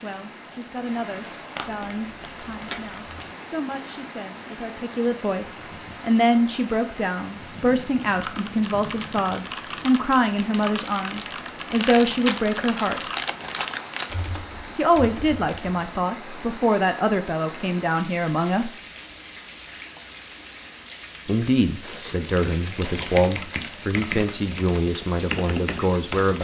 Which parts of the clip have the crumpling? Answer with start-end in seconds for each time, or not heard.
1.6-3.3, 11.8-14.2, 21.8-24.4.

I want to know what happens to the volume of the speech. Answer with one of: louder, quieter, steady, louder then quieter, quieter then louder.
louder.